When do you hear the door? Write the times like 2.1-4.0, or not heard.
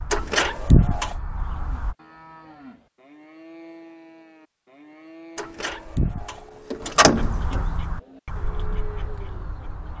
0.1-1.1, 5.3-7.6.